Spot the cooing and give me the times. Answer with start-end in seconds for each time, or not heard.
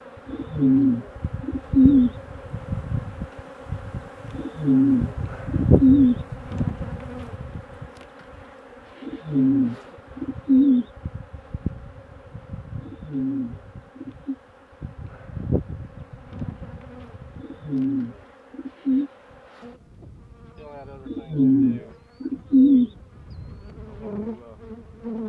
0.2-2.1, 4.3-6.2, 9.0-10.8, 12.8-14.3, 17.4-19.1, 21.1-22.9.